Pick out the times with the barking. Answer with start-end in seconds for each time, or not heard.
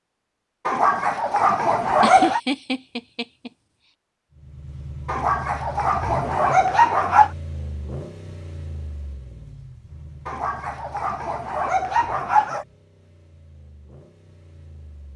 0.7-2.4, 5.0-7.3, 10.2-12.7.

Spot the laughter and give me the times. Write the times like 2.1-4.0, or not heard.
2.0-3.5.